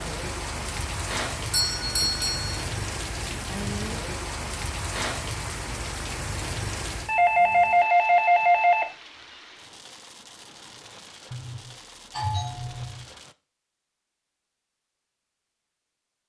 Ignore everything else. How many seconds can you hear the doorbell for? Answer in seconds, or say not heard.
5 s.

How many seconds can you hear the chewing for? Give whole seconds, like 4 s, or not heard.
not heard.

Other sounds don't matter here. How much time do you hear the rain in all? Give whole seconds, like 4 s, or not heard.
13 s.